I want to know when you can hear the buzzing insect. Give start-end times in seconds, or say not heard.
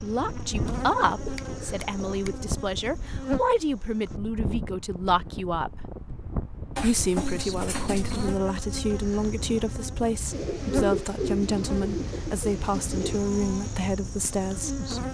0.0-4.2, 7.2-15.0.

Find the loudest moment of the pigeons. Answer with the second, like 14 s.
11 s.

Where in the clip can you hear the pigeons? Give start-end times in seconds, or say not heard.
1.1-2.5, 6.8-8.3, 10.3-13.2.